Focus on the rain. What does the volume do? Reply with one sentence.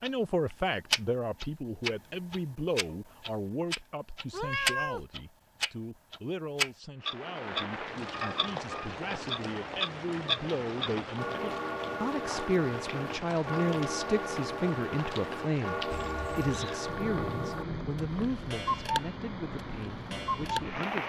The volume of the rain stays about the same.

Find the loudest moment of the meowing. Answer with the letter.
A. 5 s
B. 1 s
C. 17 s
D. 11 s
A.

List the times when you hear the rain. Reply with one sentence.
You can hear the rain from 7.0 to 21.0 s.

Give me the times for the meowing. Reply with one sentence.
You can hear the meowing from 4.3 to 5.0 s and from 15.9 to 16.8 s.